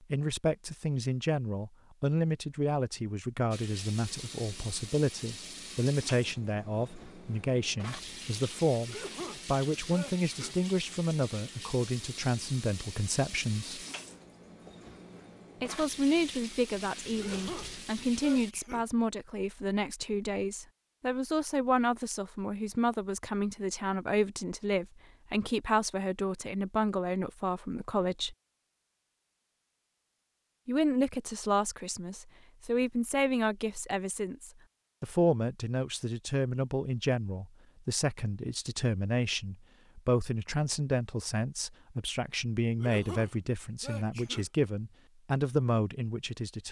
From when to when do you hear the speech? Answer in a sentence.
You can hear the speech from 0.1 to 13.8 s, from 15.6 to 28.4 s and from 30.6 to 46.6 s.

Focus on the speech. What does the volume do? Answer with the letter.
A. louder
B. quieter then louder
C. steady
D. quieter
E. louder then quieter
C.